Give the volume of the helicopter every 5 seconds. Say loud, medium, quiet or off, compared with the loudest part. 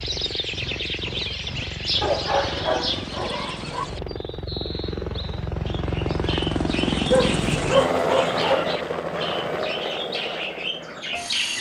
medium, loud, medium.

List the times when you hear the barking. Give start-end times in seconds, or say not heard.
2.0-3.9, 7.1-8.7.